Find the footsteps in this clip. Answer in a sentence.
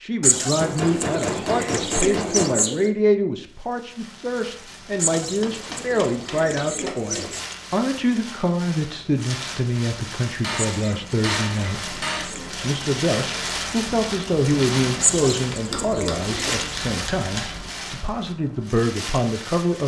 You can't hear the footsteps here.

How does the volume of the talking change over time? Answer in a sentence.
The volume of the talking stays about the same.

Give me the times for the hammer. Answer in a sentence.
The hammer can be heard from 0.6 to 2.6 s, from 5.2 to 7.5 s, from 10.4 to 12.3 s and from 15.7 to 17.7 s.